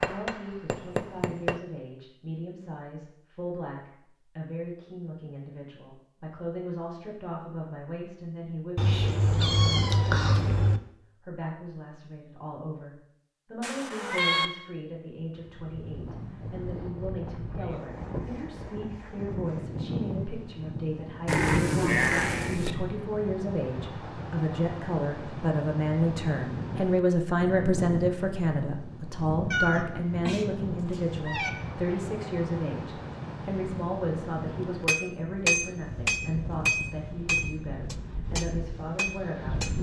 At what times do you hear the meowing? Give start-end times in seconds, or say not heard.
8.8-10.8, 13.6-14.5, 29.5-31.5.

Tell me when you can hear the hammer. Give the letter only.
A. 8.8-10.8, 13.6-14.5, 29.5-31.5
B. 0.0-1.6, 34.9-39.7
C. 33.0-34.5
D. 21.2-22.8
B.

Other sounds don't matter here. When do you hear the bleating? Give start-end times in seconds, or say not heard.
21.2-22.8.